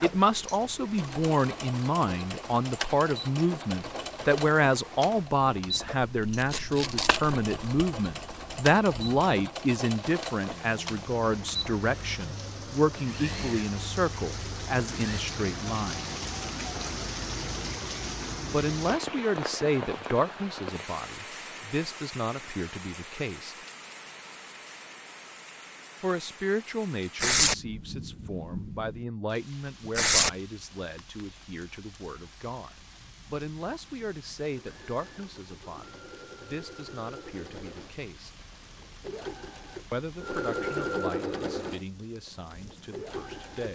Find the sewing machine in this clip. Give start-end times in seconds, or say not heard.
0.0-15.2, 34.5-43.7.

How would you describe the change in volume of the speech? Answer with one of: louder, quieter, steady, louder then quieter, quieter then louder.
quieter.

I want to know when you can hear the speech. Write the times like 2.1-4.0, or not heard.
0.0-16.1, 18.5-23.6, 26.0-38.3, 39.9-43.7.